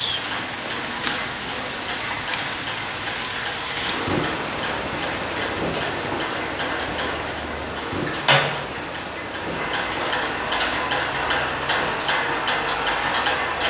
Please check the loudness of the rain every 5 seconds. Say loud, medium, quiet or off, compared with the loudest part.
loud, loud, medium.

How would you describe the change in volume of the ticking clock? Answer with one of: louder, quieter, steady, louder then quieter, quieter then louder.
louder.